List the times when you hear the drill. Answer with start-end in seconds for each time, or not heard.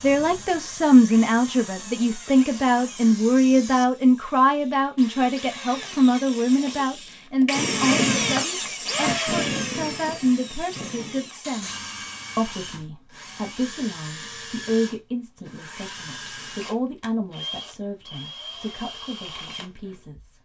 0.0-20.2.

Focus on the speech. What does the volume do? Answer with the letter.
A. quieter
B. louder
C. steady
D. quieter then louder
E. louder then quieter
A.